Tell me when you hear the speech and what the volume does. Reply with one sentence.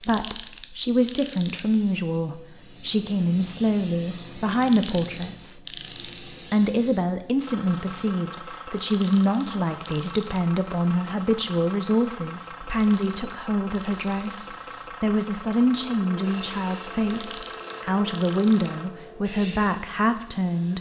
The speech can be heard from 0.1 to 5.6 s, at a steady volume; and from 6.5 to 20.7 s, at a steady volume.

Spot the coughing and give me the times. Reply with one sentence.
The coughing can't be heard in this clip.